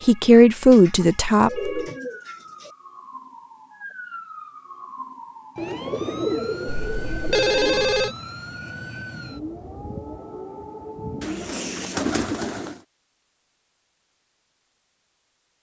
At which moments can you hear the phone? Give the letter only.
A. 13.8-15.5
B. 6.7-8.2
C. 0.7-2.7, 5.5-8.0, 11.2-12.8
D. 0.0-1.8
B.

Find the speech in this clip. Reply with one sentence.
The speech can be heard from 0.0 to 1.8 s.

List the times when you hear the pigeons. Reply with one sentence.
You can hear the pigeons from 0.7 to 2.7 s, from 5.5 to 8.0 s and from 11.2 to 12.8 s.